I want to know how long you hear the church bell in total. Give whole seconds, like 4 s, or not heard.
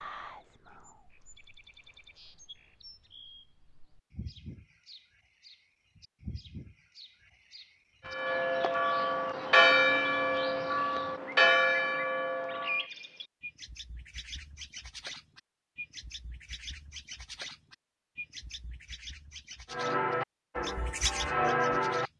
7 s.